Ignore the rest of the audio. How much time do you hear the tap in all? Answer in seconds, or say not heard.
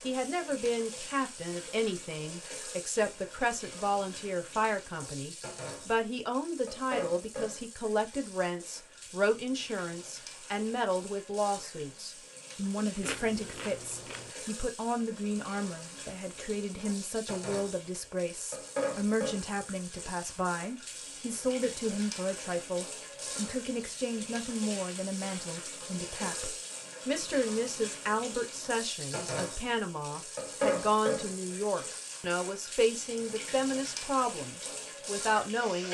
36 s.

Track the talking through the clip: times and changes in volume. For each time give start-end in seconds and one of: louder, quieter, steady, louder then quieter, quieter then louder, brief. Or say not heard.
0.0-35.8 steady.